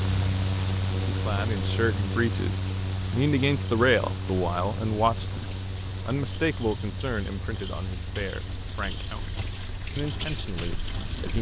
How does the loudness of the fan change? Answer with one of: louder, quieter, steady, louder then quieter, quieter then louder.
quieter.